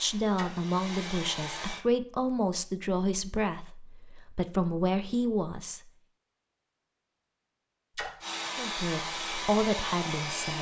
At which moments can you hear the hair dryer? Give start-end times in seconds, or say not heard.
0.0-1.9, 8.2-10.5.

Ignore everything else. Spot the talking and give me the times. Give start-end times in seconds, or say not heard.
0.0-5.8, 8.6-10.5.